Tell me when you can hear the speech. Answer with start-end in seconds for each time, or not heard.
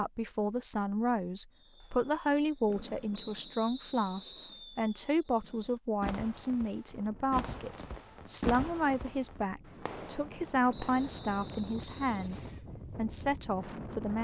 0.0-14.1.